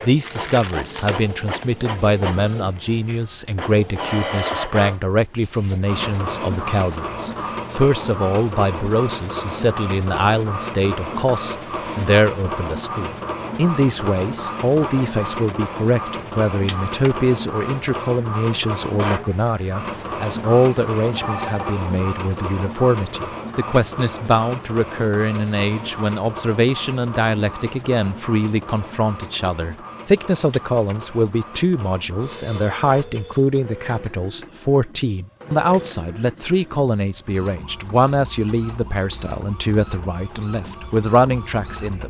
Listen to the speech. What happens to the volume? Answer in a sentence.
The loudness of the speech stays about the same.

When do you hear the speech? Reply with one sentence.
The speech can be heard from 0.0 to 42.0 s.